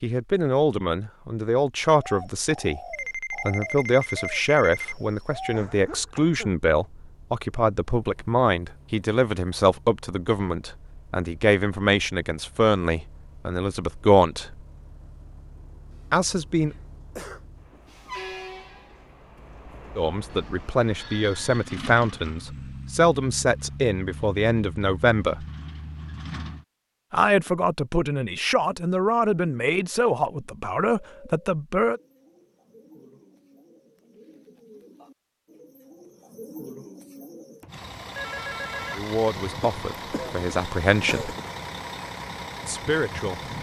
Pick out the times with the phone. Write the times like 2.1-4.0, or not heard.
2.9-5.0, 20.2-21.6, 37.6-39.0.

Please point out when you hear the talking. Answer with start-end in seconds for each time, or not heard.
0.0-14.6, 16.1-16.8, 19.9-25.4, 27.1-32.0, 39.0-41.4, 42.6-43.5.